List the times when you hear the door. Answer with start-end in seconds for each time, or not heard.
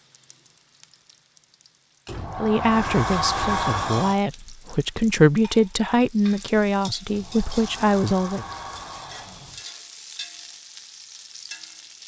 2.0-4.2, 7.0-9.7.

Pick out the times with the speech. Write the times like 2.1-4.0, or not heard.
2.4-8.4.